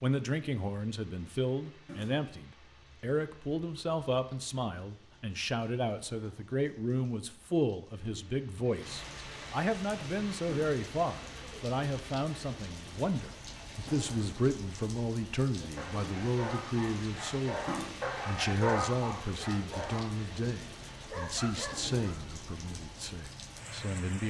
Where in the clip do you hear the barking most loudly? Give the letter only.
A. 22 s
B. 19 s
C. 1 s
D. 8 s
B.